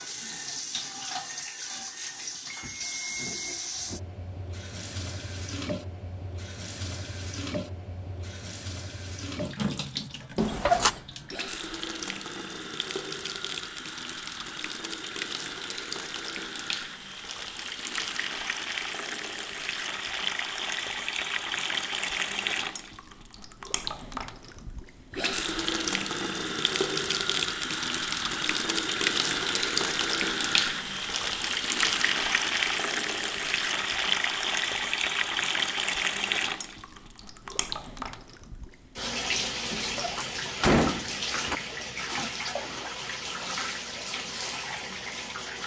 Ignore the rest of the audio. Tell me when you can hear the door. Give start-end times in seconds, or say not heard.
10.3-10.9, 39.7-41.6.